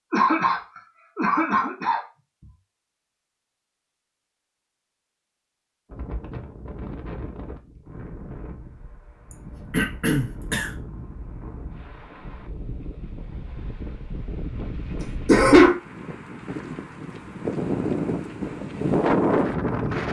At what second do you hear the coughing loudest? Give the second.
15 s.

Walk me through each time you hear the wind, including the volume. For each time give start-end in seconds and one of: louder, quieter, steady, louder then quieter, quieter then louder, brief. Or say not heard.
5.9-20.0 louder.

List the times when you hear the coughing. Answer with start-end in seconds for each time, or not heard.
0.1-2.0, 9.3-10.7, 15.0-15.8.